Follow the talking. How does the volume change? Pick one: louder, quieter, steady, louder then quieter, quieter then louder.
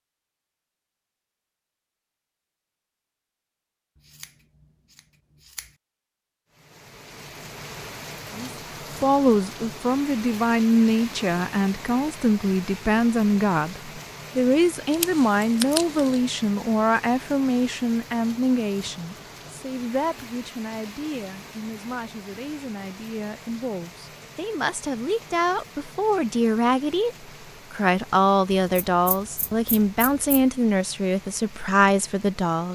quieter then louder.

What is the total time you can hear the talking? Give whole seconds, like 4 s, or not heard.
24 s.